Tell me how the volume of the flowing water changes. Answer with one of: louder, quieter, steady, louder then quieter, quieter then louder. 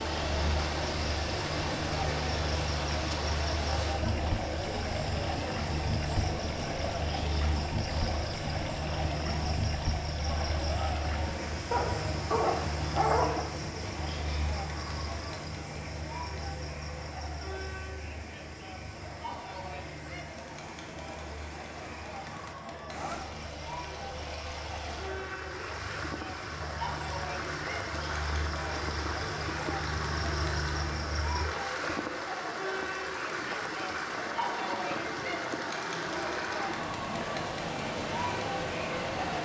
quieter then louder.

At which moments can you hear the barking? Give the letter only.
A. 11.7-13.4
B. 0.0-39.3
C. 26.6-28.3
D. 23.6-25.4
A.